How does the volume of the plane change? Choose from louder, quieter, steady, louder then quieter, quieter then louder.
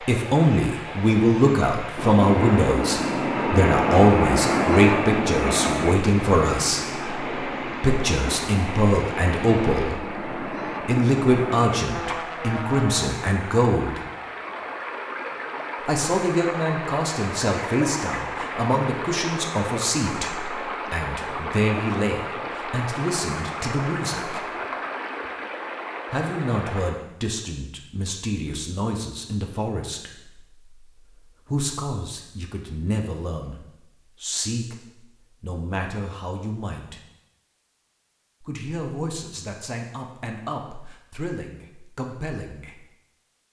quieter.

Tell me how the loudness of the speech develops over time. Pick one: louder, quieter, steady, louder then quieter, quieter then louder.
quieter.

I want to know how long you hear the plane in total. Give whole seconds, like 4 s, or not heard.
11 s.